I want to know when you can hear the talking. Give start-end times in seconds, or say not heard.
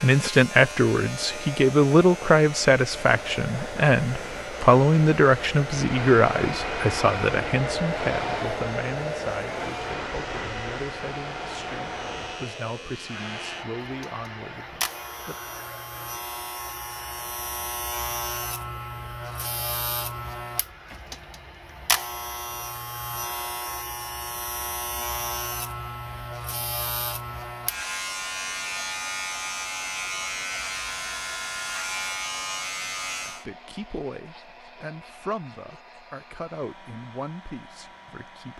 0.0-15.3, 33.2-38.5.